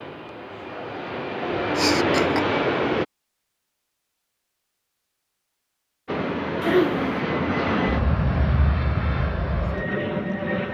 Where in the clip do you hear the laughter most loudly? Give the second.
7 s.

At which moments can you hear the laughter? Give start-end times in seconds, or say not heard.
1.8-2.5, 6.6-7.2.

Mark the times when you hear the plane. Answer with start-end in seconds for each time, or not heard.
0.0-3.0, 6.0-10.6.